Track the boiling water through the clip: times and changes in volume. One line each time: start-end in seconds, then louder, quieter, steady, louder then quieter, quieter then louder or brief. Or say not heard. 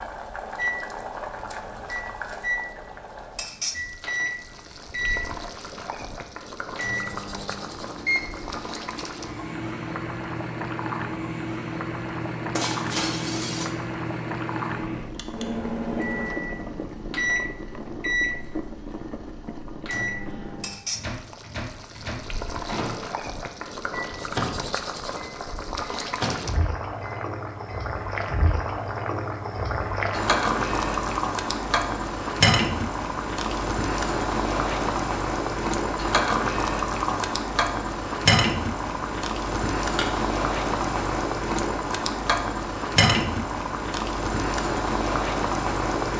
0.0-46.1 louder.